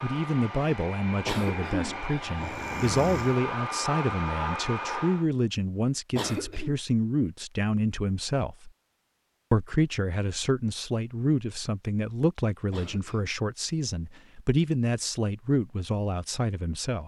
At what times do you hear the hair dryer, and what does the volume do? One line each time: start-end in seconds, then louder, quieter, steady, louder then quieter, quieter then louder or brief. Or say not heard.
0.0-5.2 louder.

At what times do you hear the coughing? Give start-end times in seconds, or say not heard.
1.2-3.4, 6.1-6.8, 12.7-13.3.